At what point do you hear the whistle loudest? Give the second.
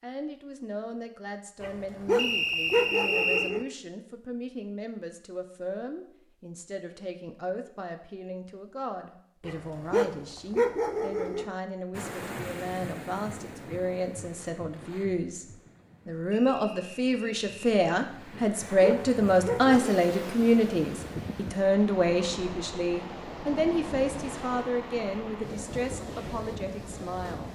3 s.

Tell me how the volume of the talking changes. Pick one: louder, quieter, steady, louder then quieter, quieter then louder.
louder then quieter.